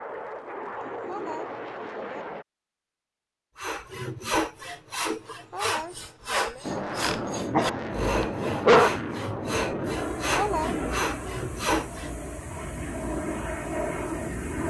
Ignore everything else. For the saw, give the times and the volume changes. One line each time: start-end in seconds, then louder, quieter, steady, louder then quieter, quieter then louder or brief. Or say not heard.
3.5-12.1 steady.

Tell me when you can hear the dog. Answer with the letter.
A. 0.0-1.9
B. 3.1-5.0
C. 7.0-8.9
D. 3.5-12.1
C.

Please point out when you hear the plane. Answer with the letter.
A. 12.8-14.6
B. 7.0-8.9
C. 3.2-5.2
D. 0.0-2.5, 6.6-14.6
D.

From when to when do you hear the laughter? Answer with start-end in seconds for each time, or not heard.
0.7-2.2, 5.2-6.7, 10.2-10.8.